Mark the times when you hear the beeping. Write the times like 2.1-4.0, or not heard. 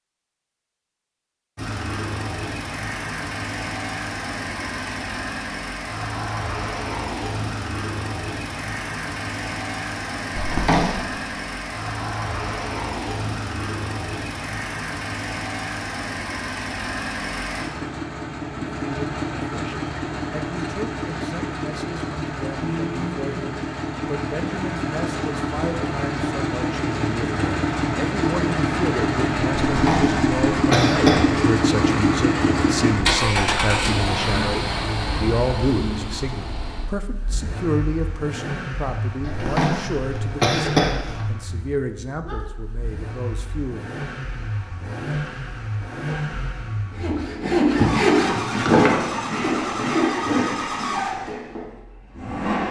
not heard.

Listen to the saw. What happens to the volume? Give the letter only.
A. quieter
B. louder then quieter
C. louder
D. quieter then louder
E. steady
A.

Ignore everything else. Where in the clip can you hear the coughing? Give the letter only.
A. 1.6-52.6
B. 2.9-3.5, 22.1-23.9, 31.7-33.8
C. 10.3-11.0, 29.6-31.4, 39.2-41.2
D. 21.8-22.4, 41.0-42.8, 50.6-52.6
C.